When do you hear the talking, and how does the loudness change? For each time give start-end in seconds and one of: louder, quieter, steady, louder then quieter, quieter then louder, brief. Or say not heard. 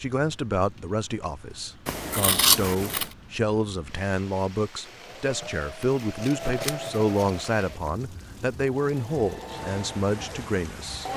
0.0-11.1 steady.